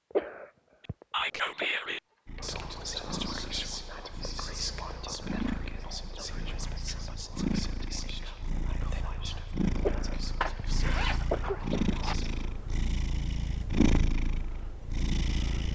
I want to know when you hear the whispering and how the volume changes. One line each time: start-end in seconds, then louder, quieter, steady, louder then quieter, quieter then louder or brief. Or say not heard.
1.1-12.4 quieter.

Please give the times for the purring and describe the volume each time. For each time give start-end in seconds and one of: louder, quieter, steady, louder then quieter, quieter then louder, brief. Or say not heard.
2.2-15.6 louder.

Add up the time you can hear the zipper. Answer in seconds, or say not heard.
2 s.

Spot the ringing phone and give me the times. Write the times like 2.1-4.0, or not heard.
not heard.